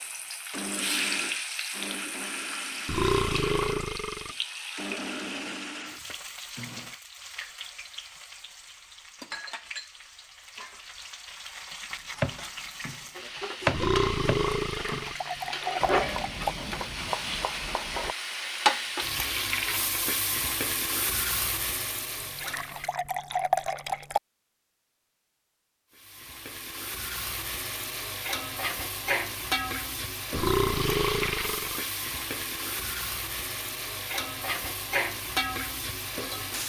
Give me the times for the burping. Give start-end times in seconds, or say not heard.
2.9-4.3, 13.7-15.2, 30.3-31.8.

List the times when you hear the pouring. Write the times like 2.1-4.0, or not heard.
14.7-16.5, 22.1-24.2.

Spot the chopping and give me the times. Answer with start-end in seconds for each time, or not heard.
12.2-18.1.